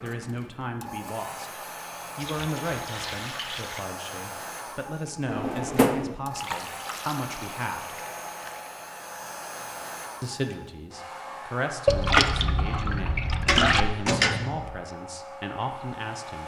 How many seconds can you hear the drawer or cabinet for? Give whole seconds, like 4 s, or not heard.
2 s.